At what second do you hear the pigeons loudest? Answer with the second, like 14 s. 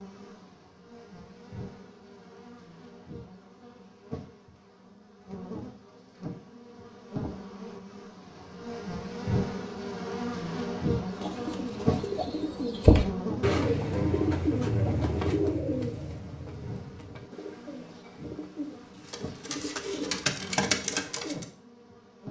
13 s.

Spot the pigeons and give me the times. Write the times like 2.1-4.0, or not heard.
11.2-21.4.